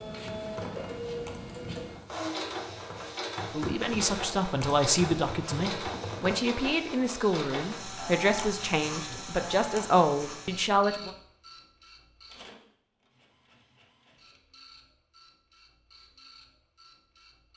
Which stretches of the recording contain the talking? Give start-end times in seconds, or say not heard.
3.5-11.1.